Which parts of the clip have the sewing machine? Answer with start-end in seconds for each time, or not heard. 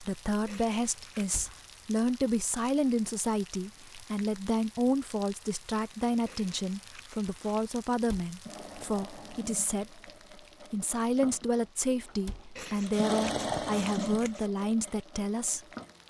8.4-16.0.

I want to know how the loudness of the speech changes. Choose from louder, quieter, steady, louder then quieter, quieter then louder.
steady.